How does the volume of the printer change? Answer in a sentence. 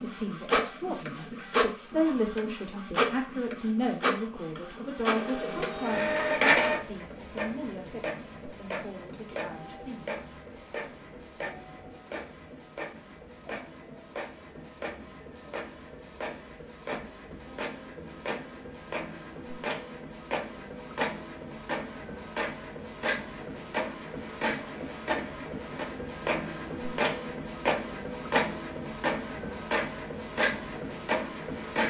The loudness of the printer goes down, then up.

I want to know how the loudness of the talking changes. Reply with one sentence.
The loudness of the talking goes down.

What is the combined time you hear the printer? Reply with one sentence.
The printer can be heard for 32 seconds in total.